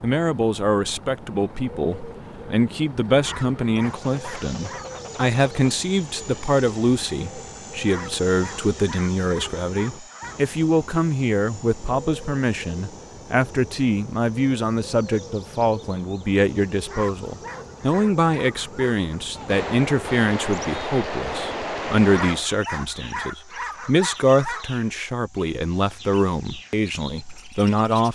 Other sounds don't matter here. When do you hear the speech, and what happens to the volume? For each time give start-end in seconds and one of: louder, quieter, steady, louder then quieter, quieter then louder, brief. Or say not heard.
0.0-28.1 steady.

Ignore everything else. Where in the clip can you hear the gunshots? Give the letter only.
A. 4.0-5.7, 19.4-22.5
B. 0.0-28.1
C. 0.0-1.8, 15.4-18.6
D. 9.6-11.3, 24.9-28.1
A.